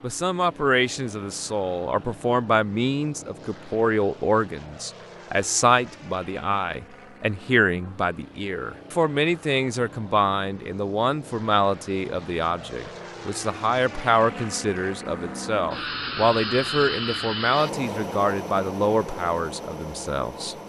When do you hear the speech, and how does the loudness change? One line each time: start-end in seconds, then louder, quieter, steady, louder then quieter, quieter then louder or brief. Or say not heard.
0.0-20.6 steady.